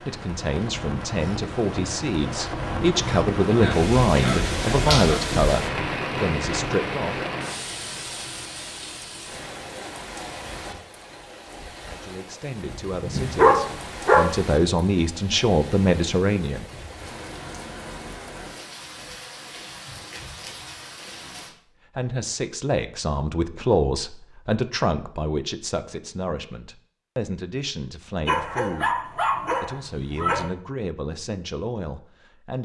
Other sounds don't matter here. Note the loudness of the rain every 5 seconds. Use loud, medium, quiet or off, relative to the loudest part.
loud, loud, medium, medium, medium, off, off.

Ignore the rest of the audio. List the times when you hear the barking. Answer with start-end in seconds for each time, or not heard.
3.5-5.2, 12.8-14.3, 28.2-30.6.